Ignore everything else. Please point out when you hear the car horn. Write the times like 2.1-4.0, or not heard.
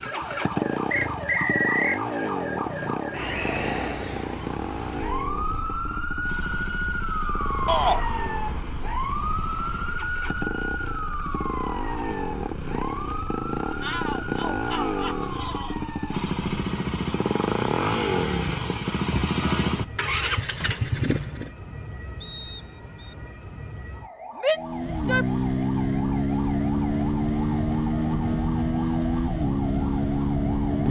not heard.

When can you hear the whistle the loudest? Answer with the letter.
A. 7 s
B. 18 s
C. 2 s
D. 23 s
C.